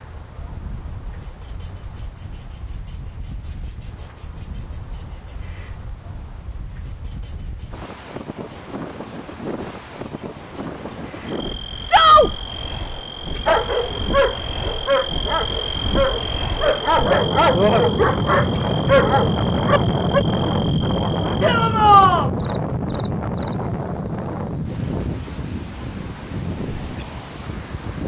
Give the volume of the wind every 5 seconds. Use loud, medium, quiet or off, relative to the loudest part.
quiet, quiet, medium, loud, loud, medium.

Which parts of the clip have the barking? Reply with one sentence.
You can hear the barking from 13.4 to 20.2 s.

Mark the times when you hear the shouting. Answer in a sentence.
The shouting can be heard from 11.8 to 12.3 s and from 21.4 to 22.3 s.